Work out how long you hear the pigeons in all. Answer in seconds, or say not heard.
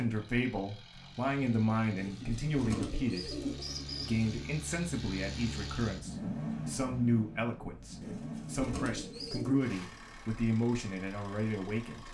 4 s.